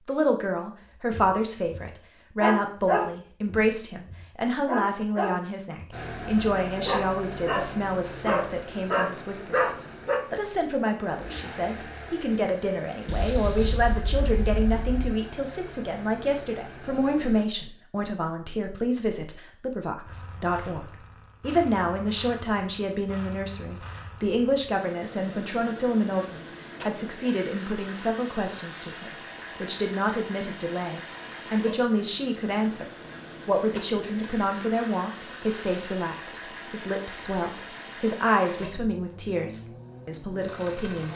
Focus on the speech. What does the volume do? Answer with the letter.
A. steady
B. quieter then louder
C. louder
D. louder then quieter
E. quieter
A.